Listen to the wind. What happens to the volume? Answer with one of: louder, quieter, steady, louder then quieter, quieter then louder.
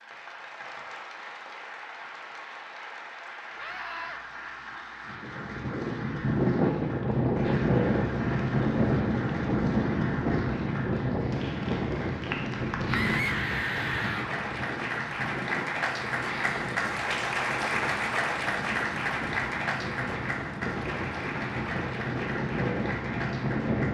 quieter then louder.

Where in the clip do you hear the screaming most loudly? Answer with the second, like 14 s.
13 s.